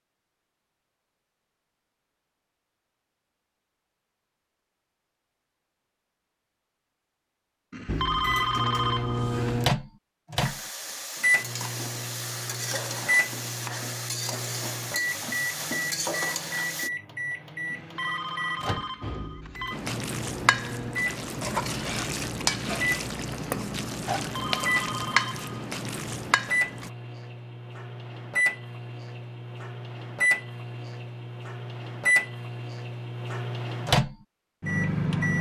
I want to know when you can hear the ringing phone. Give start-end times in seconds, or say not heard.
7.7-9.6, 17.7-19.8, 24.2-25.6.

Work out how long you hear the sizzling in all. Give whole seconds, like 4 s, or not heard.
14 s.